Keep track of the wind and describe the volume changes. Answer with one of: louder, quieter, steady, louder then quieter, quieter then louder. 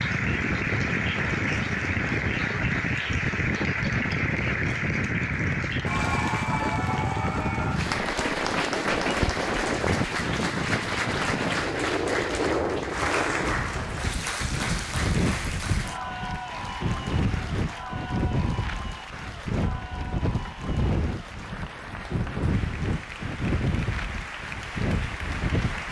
steady.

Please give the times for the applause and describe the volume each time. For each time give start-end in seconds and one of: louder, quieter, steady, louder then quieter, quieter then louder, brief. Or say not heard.
0.0-25.8 quieter.